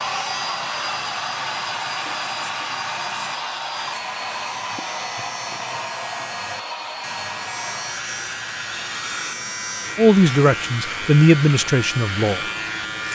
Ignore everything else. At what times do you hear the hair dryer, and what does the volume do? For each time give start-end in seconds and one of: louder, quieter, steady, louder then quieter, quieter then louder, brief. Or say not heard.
0.0-13.1 quieter.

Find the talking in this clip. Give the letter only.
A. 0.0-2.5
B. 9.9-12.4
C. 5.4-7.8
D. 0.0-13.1
B.